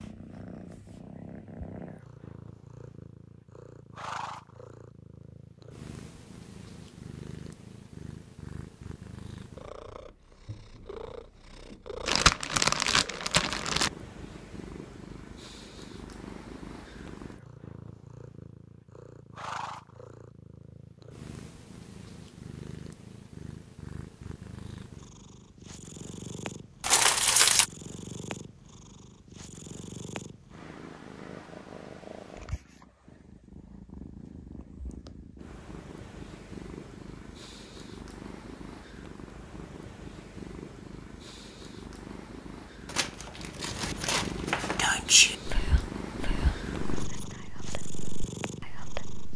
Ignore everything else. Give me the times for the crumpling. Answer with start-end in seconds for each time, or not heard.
12.1-13.9, 26.8-27.6, 42.9-44.9.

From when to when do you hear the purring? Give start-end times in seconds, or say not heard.
0.0-49.3.